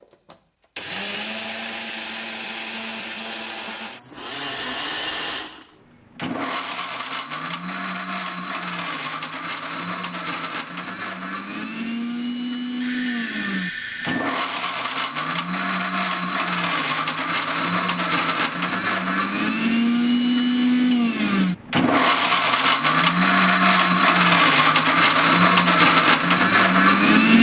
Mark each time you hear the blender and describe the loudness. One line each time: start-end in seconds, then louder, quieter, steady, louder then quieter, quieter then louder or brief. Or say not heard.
0.0-27.3 louder.